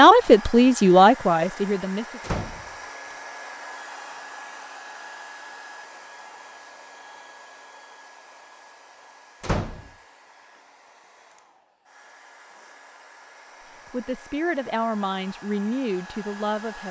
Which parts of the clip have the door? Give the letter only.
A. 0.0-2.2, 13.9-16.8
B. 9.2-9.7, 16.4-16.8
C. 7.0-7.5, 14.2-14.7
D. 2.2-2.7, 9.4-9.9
D.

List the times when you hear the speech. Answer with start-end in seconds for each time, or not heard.
0.0-2.2, 13.9-16.8.